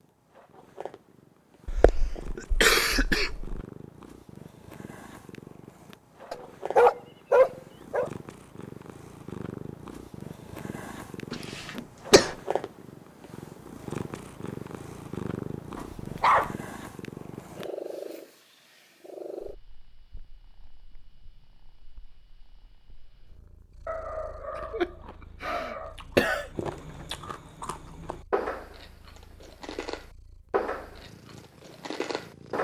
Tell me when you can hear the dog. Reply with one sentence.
You can hear the dog from 6.3 to 8.1 s, from 15.8 to 16.6 s and from 23.9 to 25.9 s.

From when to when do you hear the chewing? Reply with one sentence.
The chewing can be heard from 24.5 to 32.5 s.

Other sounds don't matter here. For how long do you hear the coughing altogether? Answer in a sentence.
You can hear the coughing for 5 seconds altogether.